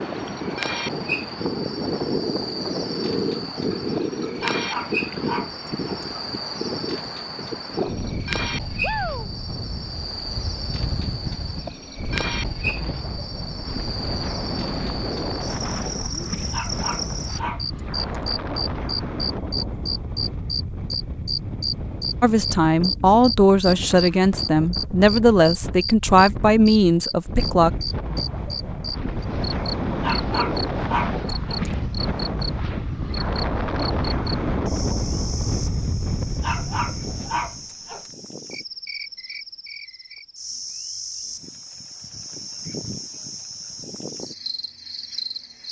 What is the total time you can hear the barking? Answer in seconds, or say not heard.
7 s.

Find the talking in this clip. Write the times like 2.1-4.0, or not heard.
22.2-27.7.